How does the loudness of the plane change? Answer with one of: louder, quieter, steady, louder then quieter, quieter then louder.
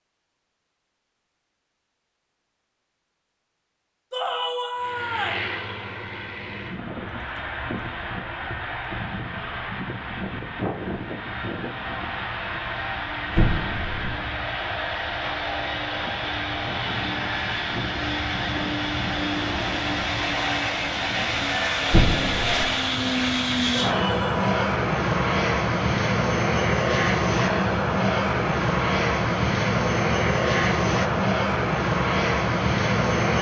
louder.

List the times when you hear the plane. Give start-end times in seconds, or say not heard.
4.8-33.3.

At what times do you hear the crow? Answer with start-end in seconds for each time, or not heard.
not heard.